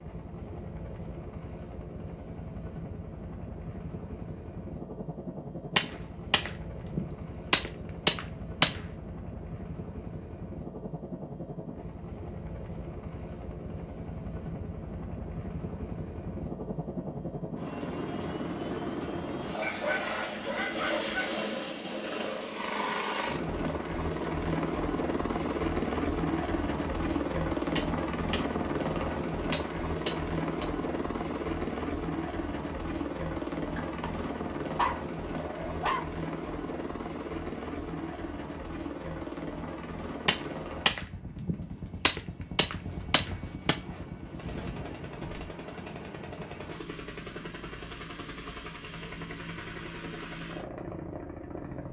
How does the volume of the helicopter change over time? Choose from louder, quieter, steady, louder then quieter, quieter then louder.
louder then quieter.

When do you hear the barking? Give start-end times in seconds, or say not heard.
19.6-21.4, 33.8-36.0.